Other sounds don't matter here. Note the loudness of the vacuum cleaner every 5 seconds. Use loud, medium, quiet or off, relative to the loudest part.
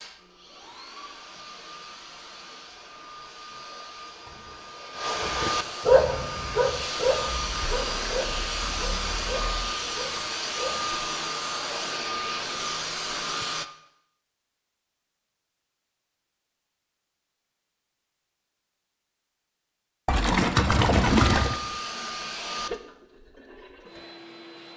quiet, loud, loud, off, medium.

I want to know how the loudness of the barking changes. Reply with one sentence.
The volume of the barking goes down.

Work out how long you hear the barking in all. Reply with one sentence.
You can hear the barking for 6 seconds altogether.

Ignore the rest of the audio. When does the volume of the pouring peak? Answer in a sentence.
The volume of the pouring peaks at 21 seconds.